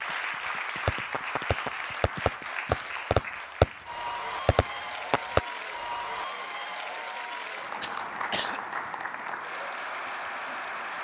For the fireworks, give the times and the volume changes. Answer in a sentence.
The fireworks can be heard from 0.2 to 5.4 s, getting louder then quieter.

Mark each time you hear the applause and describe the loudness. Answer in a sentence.
The applause can be heard from 0.0 to 10.9 s, at a steady volume.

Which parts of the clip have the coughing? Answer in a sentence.
You can hear the coughing from 7.8 to 8.6 s.